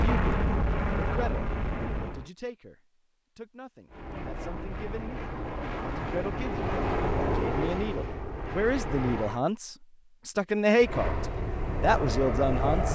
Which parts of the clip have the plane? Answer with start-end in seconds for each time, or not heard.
0.0-2.3, 3.9-9.4, 10.8-12.9.